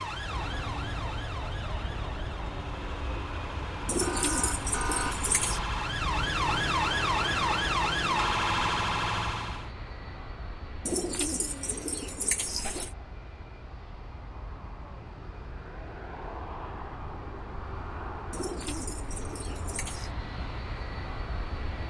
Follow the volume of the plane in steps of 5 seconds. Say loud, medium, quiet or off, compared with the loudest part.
loud, loud, medium, loud, loud.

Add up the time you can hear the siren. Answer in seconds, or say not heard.
10 s.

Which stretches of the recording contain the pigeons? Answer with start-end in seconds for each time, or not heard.
3.9-5.6, 10.8-12.9, 18.3-20.1.